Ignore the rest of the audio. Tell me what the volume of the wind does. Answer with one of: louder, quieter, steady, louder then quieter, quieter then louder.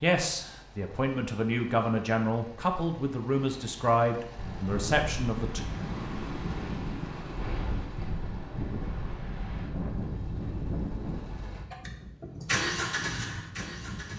quieter.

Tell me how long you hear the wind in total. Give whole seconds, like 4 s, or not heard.
10 s.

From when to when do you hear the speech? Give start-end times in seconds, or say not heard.
0.0-5.7.